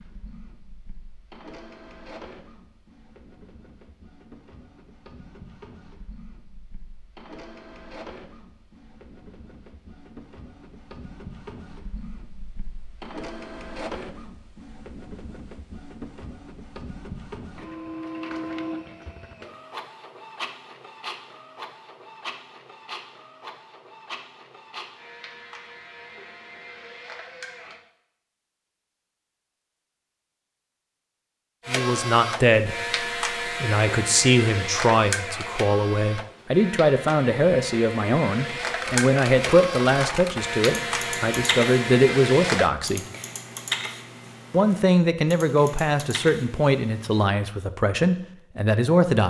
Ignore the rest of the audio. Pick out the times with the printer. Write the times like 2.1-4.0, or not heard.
0.0-27.8, 31.6-42.7.